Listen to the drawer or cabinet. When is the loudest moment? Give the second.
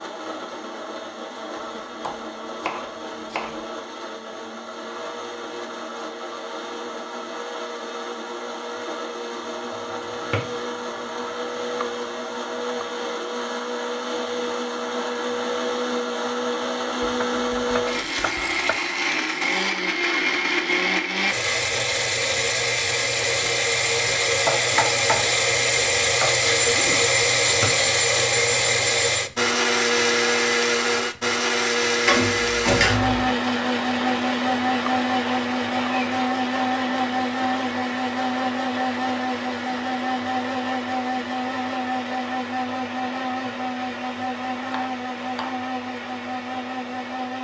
33 s.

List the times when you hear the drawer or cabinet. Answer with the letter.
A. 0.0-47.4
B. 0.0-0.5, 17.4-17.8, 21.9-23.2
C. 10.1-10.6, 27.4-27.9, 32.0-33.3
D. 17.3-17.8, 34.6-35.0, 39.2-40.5
C.